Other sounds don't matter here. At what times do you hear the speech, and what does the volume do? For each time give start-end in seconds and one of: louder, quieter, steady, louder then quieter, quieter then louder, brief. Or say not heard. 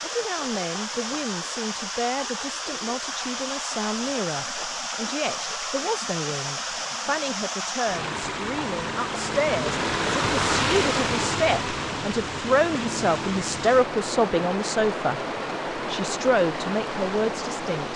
0.0-15.2 louder
15.9-17.9 brief.